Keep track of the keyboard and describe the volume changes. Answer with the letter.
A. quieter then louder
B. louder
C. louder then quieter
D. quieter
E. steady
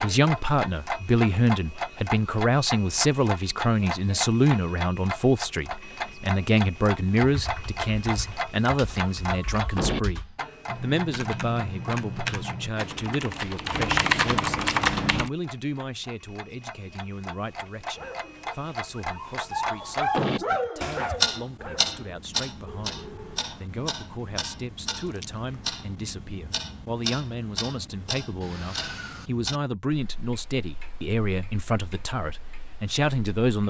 B.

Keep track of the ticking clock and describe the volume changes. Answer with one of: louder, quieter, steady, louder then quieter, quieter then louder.
quieter.